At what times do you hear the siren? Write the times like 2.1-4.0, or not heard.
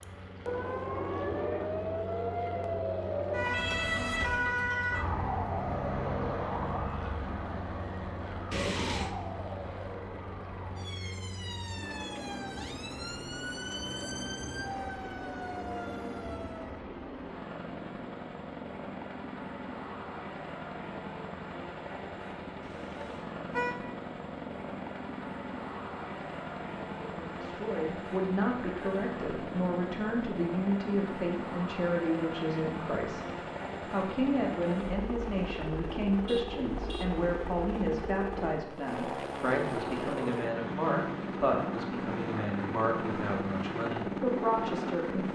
0.0-16.9.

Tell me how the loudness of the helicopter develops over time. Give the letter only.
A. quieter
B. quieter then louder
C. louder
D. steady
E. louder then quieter
C.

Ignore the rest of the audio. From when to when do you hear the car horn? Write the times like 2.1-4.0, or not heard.
8.5-9.2, 22.6-23.8, 36.1-37.1.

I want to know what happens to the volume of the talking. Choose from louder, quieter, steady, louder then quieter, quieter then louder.
steady.